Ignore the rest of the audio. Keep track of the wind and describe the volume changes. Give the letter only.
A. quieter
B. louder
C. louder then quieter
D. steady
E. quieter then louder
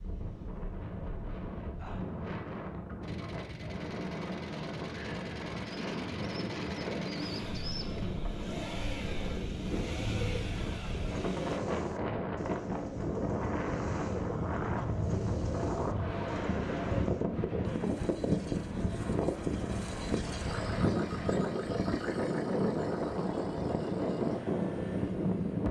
B.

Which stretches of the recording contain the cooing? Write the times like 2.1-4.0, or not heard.
5.6-17.2.